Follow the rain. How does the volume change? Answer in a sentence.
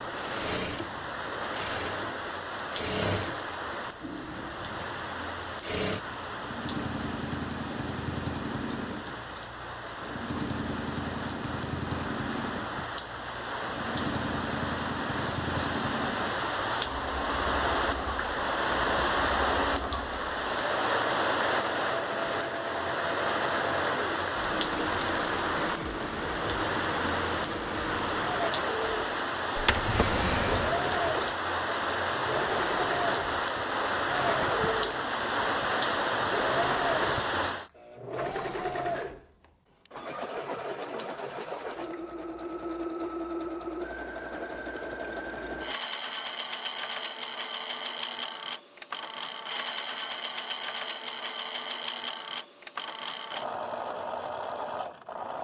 The volume of the rain goes up.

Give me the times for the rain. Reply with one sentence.
You can hear the rain from 0.0 to 37.7 s.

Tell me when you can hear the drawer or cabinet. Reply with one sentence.
The drawer or cabinet can be heard from 29.6 to 30.8 s.